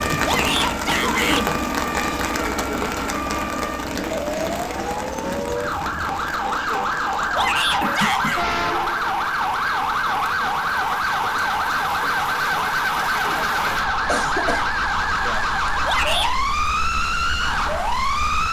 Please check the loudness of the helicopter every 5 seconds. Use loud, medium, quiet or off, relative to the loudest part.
loud, medium, off, off.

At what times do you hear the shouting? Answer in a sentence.
The shouting can be heard from 0.2 to 1.4 s, from 7.3 to 8.4 s and from 15.8 to 16.4 s.